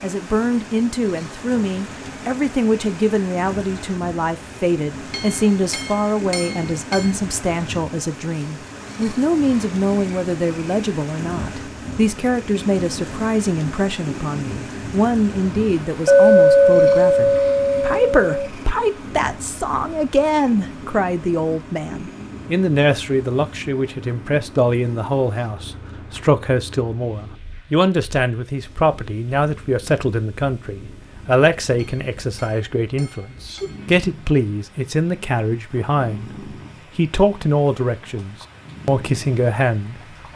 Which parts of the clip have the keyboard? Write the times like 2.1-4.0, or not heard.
not heard.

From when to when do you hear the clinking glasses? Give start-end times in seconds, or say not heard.
5.1-7.1, 16.1-18.5, 31.8-33.8.